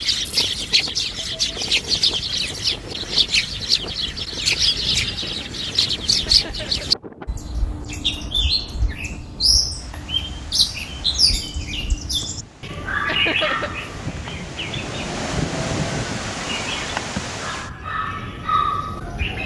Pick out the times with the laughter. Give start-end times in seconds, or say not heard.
6.2-6.9, 13.1-13.7.